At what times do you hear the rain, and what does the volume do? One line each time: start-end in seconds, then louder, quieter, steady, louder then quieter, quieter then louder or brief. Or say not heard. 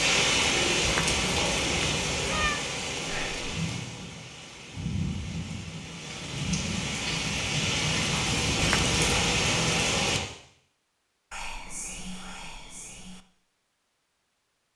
0.0-10.2 quieter then louder.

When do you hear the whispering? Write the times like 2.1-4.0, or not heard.
3.0-3.5, 11.3-13.2.